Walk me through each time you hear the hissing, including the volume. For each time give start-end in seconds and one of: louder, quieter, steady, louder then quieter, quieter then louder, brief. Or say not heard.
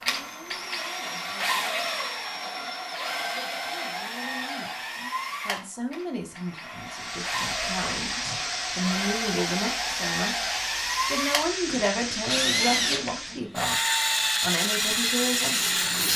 6.8-16.1 quieter.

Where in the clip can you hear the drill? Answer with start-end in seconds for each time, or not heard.
0.0-16.1.